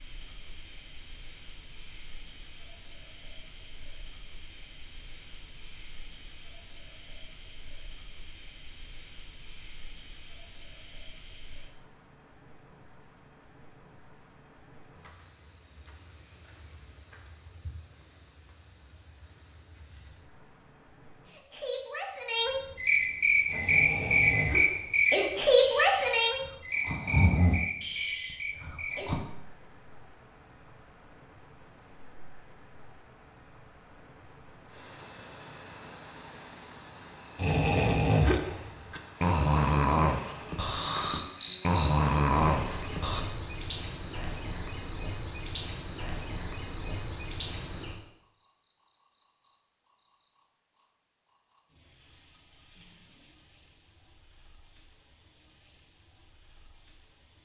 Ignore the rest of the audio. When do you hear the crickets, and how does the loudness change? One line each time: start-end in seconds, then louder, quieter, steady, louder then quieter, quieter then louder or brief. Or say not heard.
0.0-57.4 louder then quieter.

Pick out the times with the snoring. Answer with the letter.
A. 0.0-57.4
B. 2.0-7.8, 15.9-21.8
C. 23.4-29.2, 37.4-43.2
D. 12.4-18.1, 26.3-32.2
C.